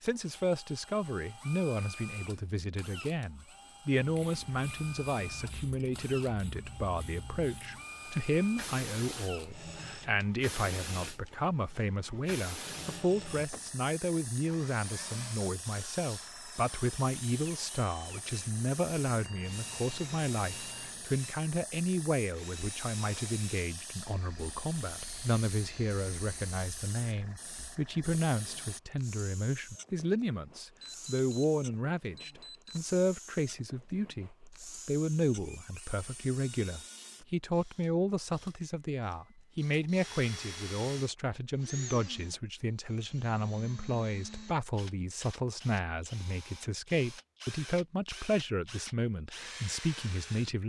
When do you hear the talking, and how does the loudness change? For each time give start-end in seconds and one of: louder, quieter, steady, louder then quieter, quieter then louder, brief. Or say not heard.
0.0-50.6 steady.